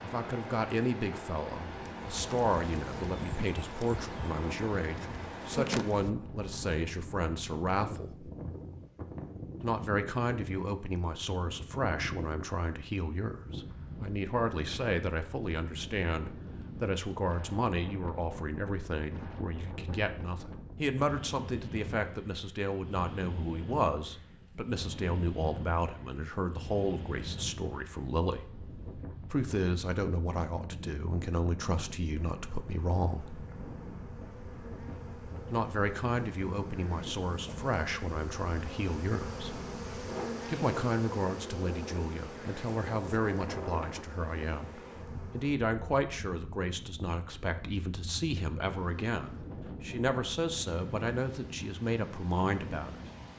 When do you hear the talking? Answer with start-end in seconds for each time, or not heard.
0.0-8.3, 9.6-28.4, 29.3-33.4, 35.5-39.5, 40.5-53.0.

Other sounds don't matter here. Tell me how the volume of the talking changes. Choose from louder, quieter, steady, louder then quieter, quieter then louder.
steady.